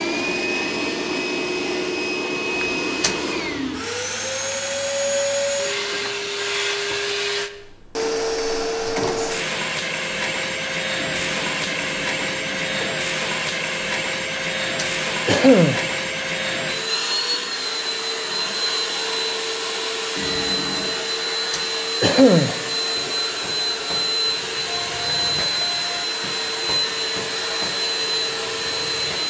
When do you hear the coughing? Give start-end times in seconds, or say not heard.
2.6-3.1, 14.8-15.8, 21.5-22.6.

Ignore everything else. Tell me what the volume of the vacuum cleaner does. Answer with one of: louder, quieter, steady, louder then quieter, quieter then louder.
steady.